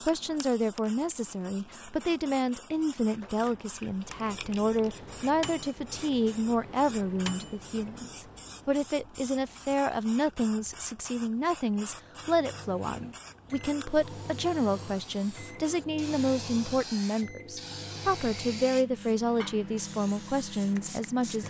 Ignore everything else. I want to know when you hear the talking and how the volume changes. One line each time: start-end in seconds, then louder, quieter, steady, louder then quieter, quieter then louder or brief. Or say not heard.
0.1-21.4 steady.